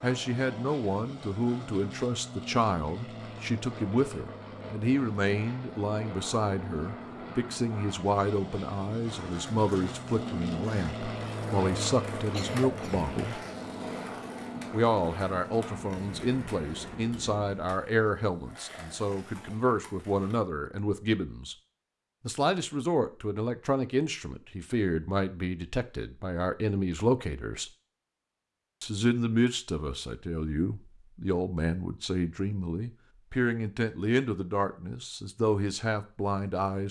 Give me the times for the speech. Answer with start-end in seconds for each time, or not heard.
0.0-13.3, 14.7-21.6, 22.2-27.7, 28.8-36.8.